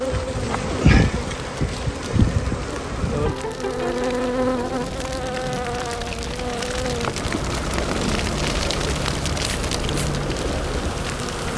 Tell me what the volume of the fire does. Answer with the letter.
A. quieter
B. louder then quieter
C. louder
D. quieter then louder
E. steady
C.